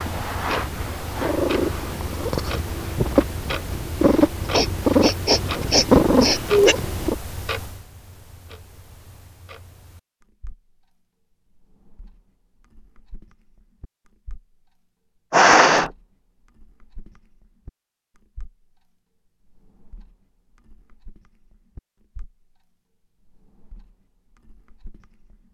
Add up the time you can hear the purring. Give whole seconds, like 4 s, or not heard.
7 s.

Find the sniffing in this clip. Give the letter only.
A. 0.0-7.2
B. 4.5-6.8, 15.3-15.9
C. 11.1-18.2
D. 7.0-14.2
B.